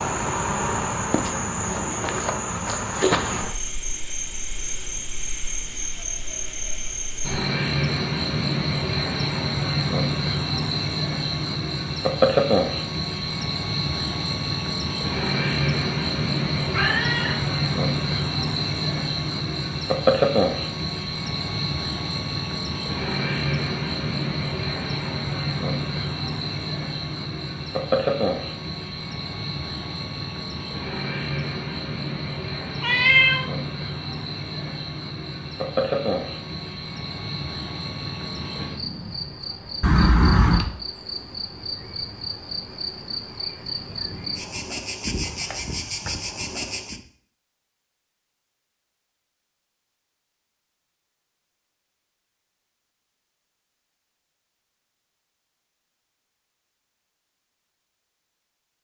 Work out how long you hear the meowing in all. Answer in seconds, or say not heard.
2 s.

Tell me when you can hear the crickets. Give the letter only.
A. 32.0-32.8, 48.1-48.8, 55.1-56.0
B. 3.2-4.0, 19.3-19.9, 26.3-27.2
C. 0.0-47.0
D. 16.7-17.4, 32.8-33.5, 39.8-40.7
C.